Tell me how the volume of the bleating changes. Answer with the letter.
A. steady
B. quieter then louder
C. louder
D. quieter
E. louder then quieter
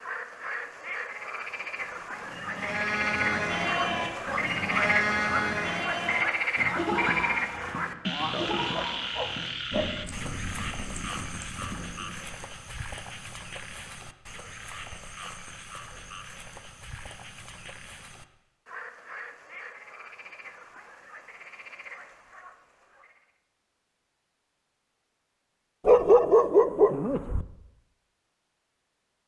D.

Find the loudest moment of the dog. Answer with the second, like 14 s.
26 s.